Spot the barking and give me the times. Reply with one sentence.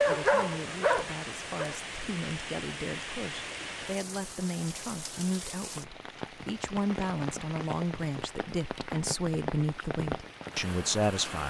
You can hear the barking from 0.0 to 1.8 s.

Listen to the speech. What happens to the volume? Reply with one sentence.
The volume of the speech goes up.